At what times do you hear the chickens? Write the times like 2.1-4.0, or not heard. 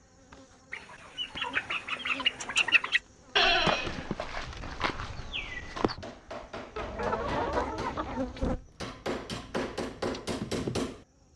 0.7-3.0, 6.8-8.6.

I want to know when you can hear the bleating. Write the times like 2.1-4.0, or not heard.
3.4-6.0.